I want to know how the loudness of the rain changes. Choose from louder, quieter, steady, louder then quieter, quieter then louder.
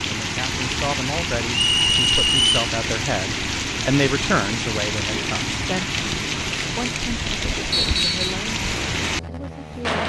steady.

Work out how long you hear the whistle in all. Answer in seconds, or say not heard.
2 s.